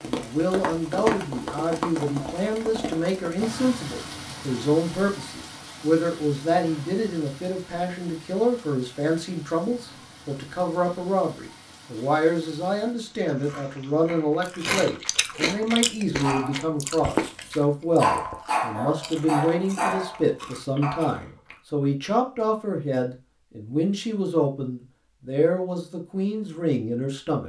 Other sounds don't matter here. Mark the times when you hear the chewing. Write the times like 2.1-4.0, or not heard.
13.2-21.6.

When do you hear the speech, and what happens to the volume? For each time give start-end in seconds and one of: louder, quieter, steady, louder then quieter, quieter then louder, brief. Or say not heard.
0.1-27.4 steady.